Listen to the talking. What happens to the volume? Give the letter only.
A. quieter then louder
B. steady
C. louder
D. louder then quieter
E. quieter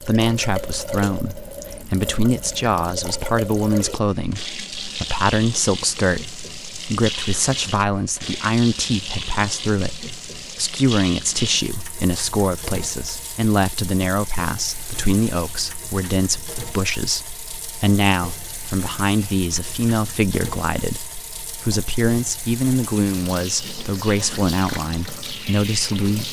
B.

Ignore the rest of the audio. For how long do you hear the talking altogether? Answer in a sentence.
The talking can be heard for 26 seconds in total.